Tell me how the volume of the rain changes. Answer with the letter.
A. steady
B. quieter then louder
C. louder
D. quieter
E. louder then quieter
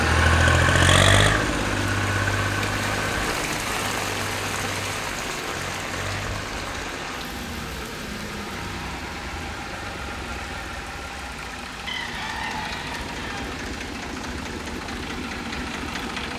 D.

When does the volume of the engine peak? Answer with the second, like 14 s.
1 s.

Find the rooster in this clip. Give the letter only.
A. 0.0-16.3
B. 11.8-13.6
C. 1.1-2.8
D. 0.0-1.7
B.